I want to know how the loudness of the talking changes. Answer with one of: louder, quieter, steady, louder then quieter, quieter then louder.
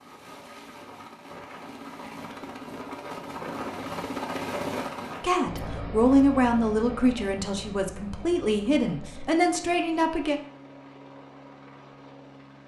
quieter then louder.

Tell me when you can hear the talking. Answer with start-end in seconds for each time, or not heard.
5.2-10.4.